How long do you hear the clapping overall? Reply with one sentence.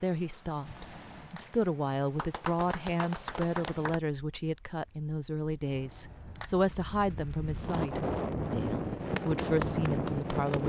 The clapping can be heard for 3 seconds in total.